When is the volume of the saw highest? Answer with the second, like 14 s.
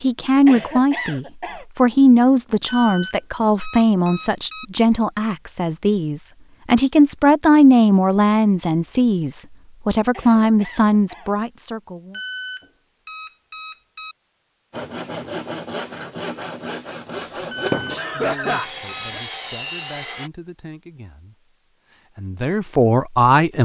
18 s.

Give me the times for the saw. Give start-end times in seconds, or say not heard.
14.7-20.3.